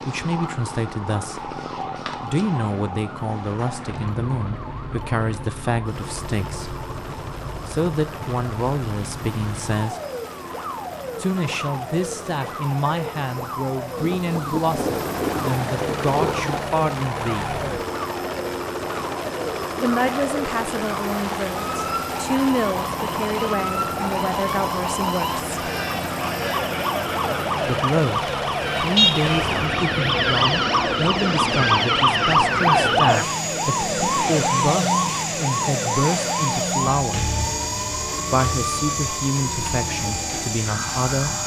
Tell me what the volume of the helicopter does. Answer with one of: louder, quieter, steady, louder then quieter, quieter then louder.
louder.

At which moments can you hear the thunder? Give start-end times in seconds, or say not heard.
13.9-16.7.